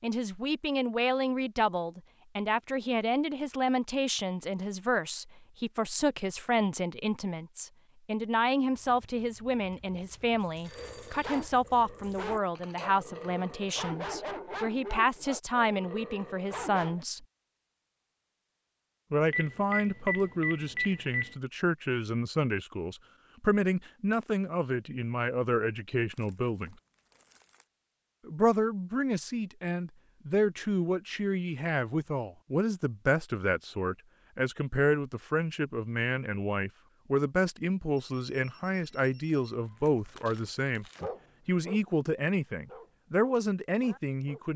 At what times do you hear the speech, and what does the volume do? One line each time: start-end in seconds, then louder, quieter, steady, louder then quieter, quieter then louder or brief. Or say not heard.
0.0-17.2 steady
19.1-26.8 steady
28.2-44.5 steady.